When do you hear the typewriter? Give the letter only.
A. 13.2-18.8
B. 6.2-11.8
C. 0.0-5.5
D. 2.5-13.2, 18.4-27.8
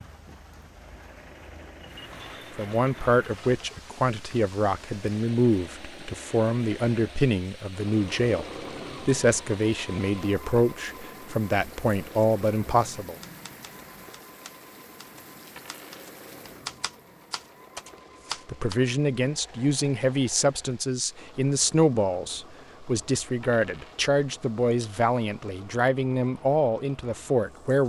A.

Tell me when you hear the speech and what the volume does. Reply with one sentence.
The speech can be heard from 2.5 to 13.2 s, at a steady volume; and from 18.4 to 27.8 s, at a steady volume.